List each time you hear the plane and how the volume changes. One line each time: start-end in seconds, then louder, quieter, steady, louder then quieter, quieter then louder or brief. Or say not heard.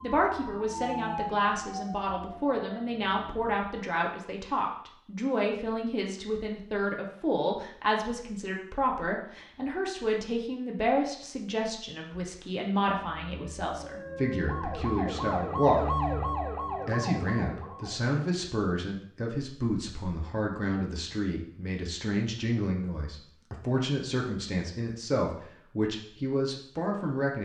not heard.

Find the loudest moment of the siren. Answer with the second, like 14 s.
16 s.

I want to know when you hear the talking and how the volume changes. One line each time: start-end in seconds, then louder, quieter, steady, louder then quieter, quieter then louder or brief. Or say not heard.
0.0-15.9 steady
16.9-27.4 steady.